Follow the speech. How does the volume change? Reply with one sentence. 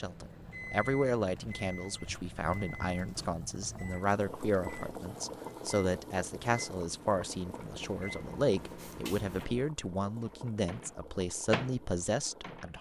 The loudness of the speech stays about the same.